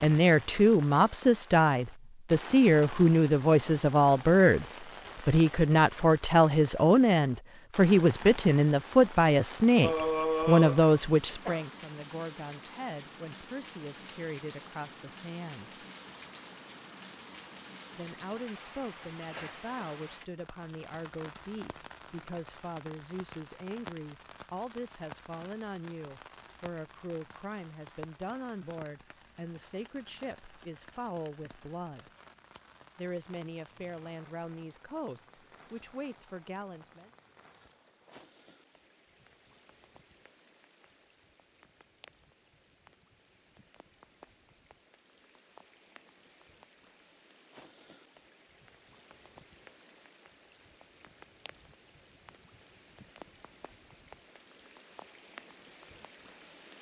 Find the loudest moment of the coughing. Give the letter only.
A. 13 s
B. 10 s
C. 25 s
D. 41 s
B.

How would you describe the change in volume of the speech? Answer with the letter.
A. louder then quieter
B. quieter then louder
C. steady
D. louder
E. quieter
E.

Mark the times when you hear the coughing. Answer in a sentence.
You can hear the coughing from 9.8 to 11.7 s.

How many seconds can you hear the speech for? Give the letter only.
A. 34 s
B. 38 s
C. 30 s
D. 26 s
A.